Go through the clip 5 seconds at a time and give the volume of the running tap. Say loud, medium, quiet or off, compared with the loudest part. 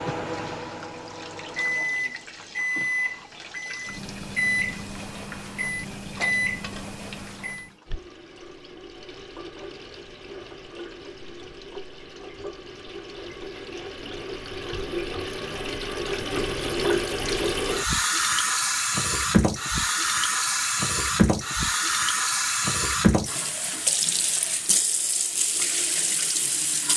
quiet, quiet, quiet, loud, loud, loud.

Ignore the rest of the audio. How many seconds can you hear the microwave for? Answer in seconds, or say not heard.
8 s.